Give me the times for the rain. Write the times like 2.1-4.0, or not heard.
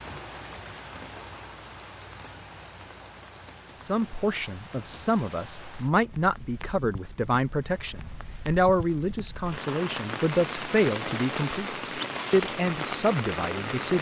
0.0-13.9.